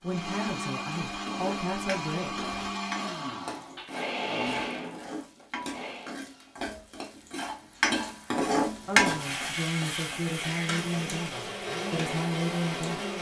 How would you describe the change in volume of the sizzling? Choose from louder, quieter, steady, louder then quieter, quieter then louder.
louder then quieter.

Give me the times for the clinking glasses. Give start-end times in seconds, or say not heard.
not heard.